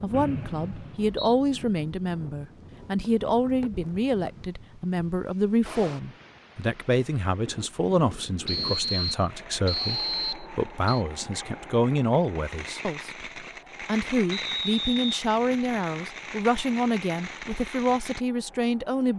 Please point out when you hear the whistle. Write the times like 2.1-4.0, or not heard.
0.1-1.4, 8.4-11.1, 14.3-15.7.